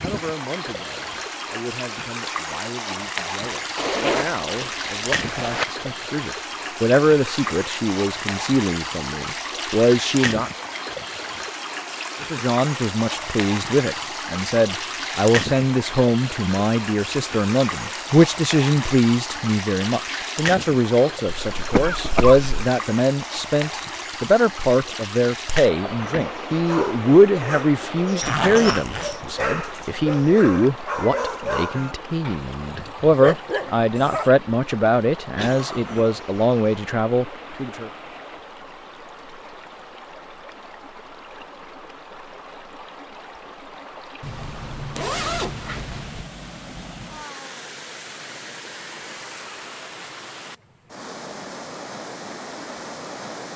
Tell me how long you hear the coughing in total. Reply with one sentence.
The coughing can be heard for 2 seconds in total.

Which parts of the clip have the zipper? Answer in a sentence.
You can hear the zipper from 3.8 to 5.7 s, from 28.2 to 29.1 s and from 44.2 to 46.2 s.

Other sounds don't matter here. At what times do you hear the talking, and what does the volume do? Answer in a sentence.
The talking can be heard from 0.0 to 10.5 s, getting louder; and from 12.2 to 37.9 s, at a steady volume.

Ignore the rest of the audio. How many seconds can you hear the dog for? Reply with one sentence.
You can hear the dog for 8 seconds altogether.